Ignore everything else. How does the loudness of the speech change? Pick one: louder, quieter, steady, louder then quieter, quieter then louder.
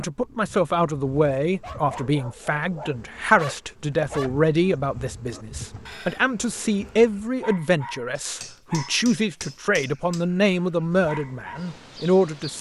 steady.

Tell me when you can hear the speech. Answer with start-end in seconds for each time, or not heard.
0.0-12.5.